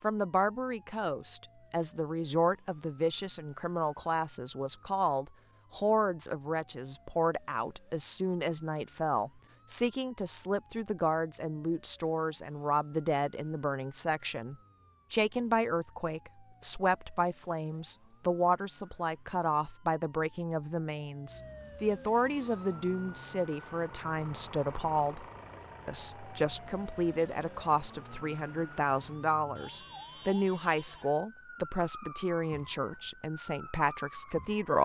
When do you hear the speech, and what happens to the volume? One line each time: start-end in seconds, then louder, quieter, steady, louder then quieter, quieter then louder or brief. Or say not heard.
0.0-25.2 steady
25.9-34.7 steady.